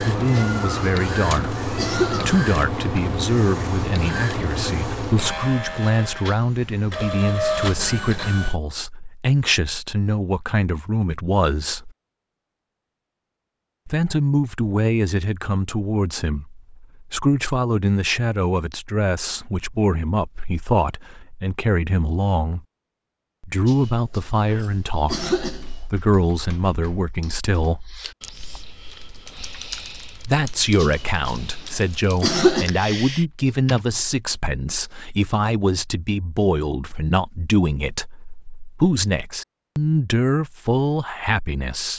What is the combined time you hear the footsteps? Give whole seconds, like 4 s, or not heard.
not heard.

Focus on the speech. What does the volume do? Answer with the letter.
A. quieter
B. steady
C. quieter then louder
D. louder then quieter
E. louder
B.